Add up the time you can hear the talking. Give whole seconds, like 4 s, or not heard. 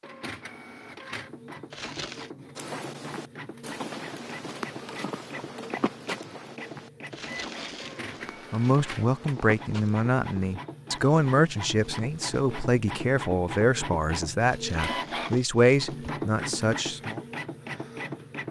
9 s.